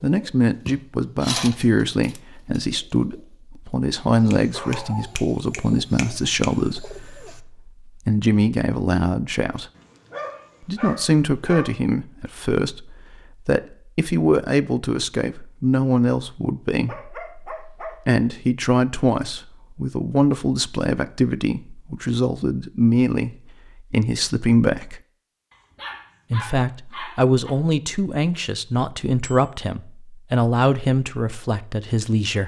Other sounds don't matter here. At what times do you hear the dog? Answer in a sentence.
The dog can be heard from 4.5 to 5.2 s, from 9.8 to 11.7 s, from 16.8 to 18.0 s and from 25.5 to 27.5 s.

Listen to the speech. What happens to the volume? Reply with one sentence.
The loudness of the speech stays about the same.